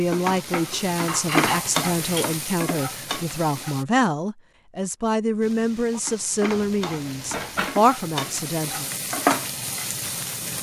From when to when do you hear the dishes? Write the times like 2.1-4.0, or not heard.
0.7-2.3, 6.5-7.8.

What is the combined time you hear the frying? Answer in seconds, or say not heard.
9 s.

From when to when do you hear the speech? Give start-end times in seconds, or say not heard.
0.0-8.9.